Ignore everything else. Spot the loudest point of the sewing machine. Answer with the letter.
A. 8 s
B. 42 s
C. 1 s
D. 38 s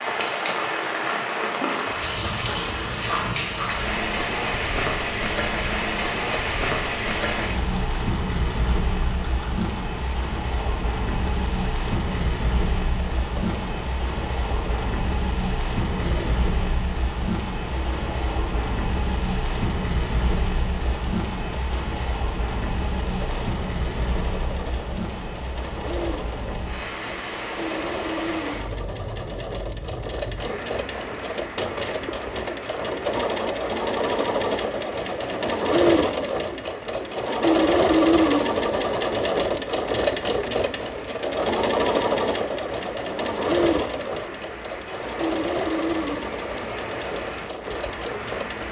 D.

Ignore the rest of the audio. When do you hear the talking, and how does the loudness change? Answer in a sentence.
The talking can't be heard in this clip.